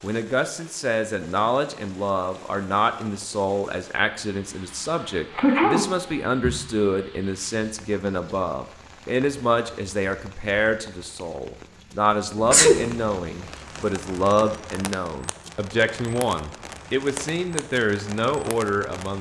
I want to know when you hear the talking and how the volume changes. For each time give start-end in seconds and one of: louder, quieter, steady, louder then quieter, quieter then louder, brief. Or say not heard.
0.0-19.1 steady.